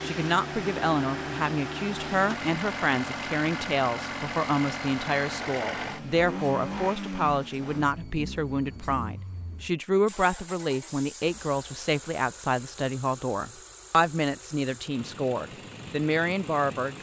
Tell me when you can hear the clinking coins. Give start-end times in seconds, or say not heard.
not heard.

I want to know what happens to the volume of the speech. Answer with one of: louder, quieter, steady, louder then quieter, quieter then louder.
steady.